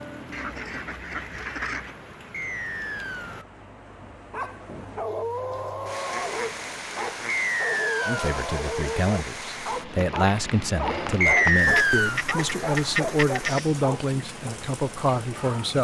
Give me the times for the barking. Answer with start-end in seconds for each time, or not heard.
4.3-14.6.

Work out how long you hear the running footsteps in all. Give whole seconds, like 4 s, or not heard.
not heard.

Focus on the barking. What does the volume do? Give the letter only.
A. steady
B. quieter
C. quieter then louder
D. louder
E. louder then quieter
A.